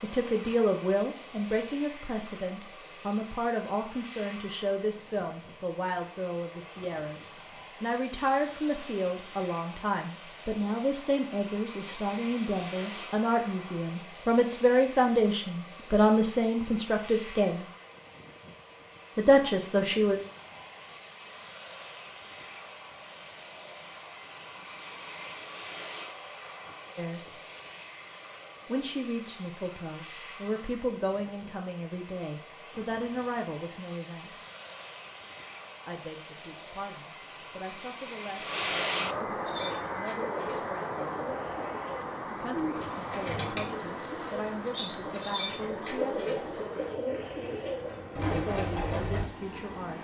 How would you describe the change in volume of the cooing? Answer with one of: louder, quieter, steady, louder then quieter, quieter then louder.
louder.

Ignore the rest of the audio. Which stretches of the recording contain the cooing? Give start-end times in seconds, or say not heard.
39.5-49.2.